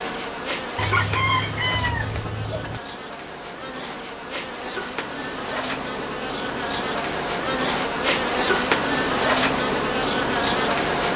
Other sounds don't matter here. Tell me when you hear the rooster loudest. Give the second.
1 s.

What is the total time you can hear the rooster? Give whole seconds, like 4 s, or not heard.
2 s.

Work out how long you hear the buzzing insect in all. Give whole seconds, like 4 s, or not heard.
11 s.